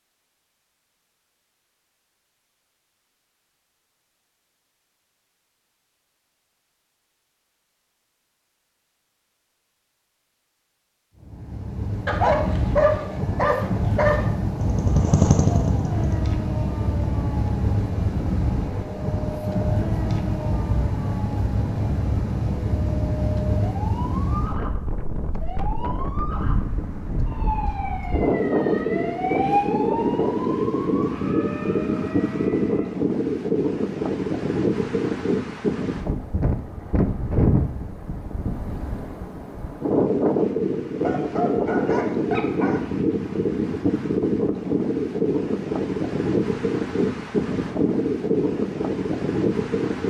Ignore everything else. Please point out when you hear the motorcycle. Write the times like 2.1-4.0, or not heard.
14.6-16.2.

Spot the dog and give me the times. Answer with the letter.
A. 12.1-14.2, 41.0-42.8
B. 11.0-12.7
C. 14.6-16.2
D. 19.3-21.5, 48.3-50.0
A.